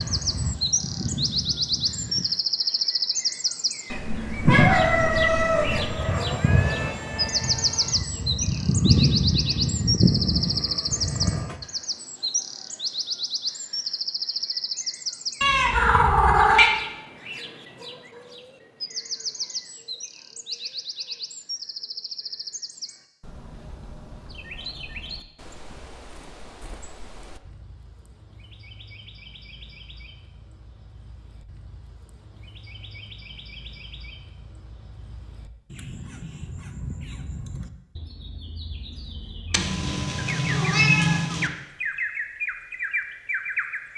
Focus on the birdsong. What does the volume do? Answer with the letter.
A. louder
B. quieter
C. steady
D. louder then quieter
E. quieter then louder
E.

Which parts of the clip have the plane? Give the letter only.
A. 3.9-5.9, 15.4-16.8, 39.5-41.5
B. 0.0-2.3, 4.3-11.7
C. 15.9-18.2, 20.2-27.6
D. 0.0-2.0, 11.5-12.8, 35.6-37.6
B.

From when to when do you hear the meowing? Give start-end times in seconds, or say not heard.
3.9-5.9, 15.4-16.8, 39.5-41.5.